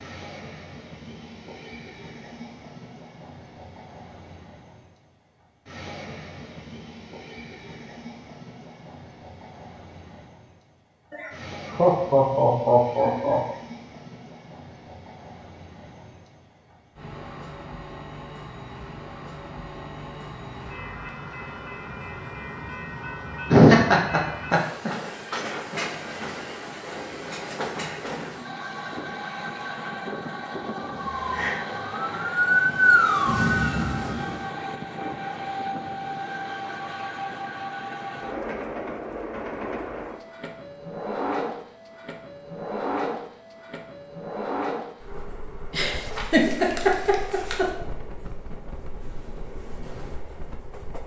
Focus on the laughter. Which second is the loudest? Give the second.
24 s.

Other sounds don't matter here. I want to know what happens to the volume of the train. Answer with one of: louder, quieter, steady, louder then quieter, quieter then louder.
louder.